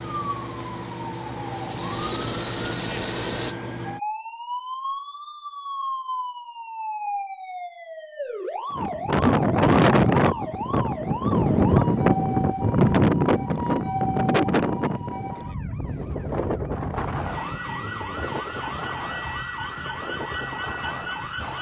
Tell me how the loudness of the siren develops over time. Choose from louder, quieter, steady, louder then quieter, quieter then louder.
steady.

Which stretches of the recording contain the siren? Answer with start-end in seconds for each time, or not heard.
0.0-21.5.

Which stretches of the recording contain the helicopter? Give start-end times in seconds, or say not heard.
0.0-3.5.